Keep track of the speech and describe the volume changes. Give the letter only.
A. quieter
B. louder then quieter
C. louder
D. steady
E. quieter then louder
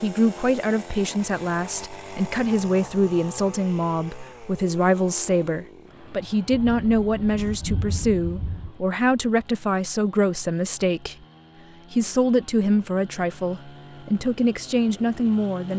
D.